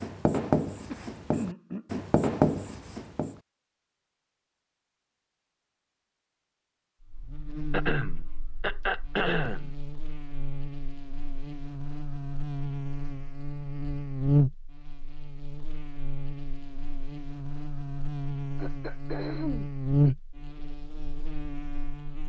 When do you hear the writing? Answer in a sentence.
You can hear the writing from 0.0 to 3.4 s.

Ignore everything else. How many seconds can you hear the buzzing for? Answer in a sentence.
You can hear the buzzing for 15 seconds altogether.